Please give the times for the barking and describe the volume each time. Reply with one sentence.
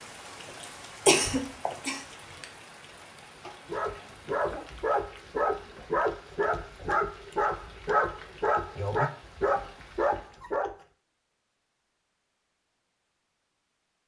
The barking can be heard from 3.6 to 10.7 s, at a steady volume.